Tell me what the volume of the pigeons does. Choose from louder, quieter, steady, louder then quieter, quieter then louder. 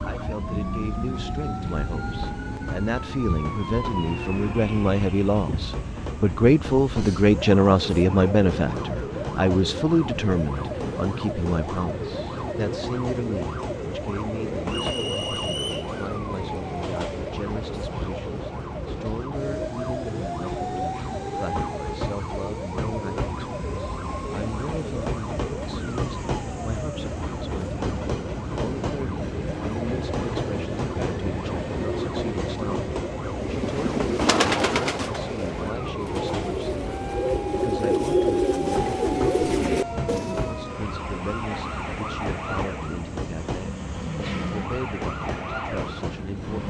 quieter then louder.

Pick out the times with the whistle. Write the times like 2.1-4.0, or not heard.
14.7-15.9.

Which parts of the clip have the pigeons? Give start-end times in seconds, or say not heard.
33.4-40.5.